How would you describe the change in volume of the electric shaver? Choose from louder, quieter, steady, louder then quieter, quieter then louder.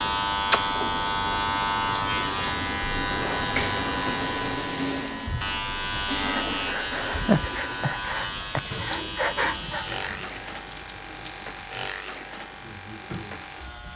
quieter.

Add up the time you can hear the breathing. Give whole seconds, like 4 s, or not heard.
5 s.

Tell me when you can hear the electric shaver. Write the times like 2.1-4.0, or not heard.
0.0-13.9.